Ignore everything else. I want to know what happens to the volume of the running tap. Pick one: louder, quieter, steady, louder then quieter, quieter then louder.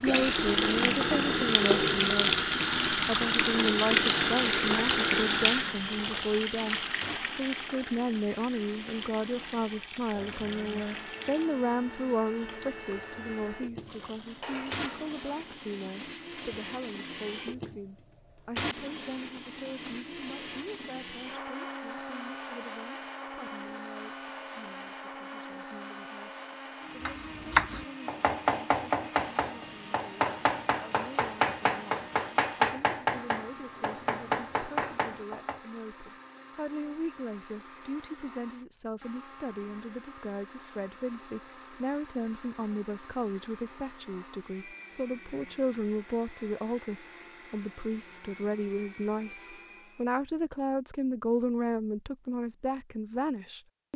quieter.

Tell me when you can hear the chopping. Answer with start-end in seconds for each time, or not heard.
27.0-35.6.